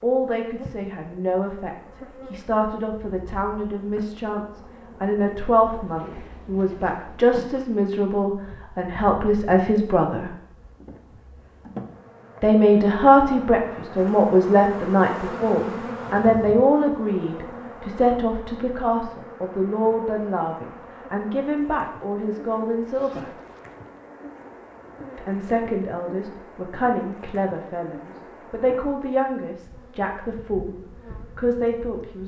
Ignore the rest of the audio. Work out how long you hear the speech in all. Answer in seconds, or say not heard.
28 s.